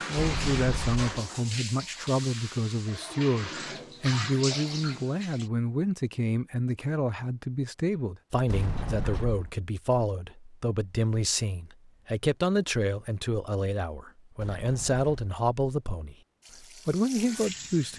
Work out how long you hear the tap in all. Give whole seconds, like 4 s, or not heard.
7 s.